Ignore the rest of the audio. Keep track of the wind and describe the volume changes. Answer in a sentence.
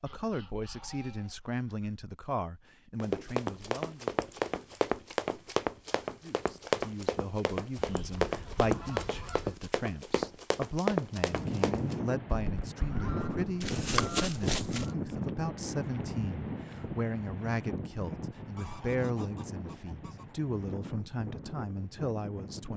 The loudness of the wind goes down.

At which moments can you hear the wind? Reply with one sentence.
The wind can be heard from 11.1 to 22.7 s.